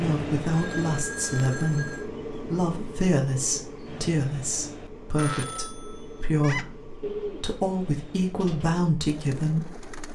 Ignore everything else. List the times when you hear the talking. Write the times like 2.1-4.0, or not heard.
0.0-10.1.